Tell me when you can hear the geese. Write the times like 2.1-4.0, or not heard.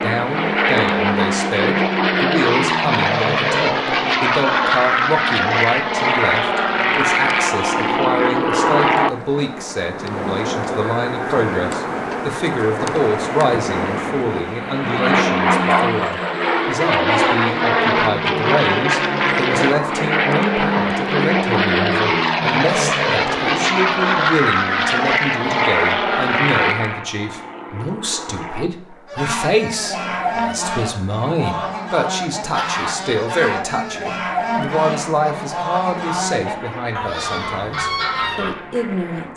29.1-38.5.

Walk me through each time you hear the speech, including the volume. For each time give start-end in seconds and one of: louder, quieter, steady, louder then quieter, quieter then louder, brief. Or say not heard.
0.0-39.3 steady.